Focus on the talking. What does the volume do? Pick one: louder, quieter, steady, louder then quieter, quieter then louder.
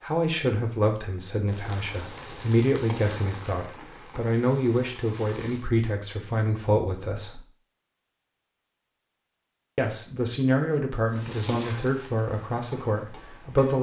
steady.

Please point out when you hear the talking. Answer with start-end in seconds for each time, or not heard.
0.0-7.4, 9.8-13.7.